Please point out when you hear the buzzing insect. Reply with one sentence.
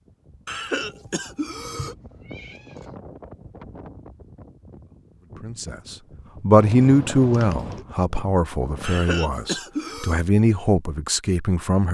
The buzzing insect can't be heard in this clip.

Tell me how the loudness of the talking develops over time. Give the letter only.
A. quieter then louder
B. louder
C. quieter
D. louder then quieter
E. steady
A.